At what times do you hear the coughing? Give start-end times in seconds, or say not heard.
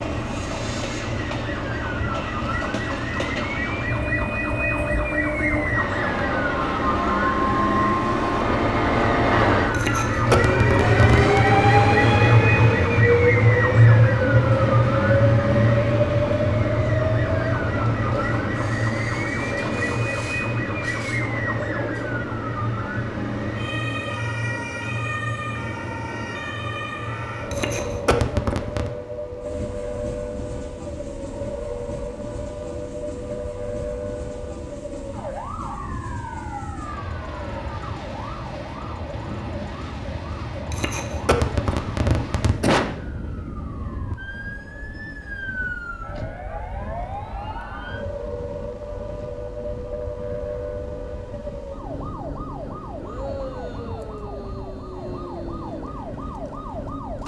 9.7-11.5, 27.5-28.9, 40.7-42.9.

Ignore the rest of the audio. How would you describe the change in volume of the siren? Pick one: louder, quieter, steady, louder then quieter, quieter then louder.
quieter.